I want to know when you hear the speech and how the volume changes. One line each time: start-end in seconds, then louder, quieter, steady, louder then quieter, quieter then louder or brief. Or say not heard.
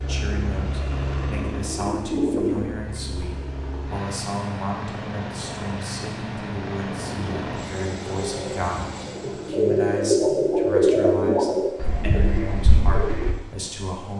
0.1-14.1 steady.